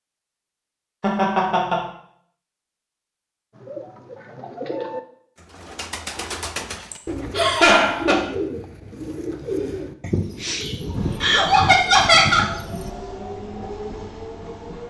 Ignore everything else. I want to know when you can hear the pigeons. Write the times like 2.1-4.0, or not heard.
3.5-12.9.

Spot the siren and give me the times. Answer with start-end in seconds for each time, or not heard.
not heard.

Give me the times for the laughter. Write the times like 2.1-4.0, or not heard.
1.0-1.9, 6.9-8.2, 11.2-12.4.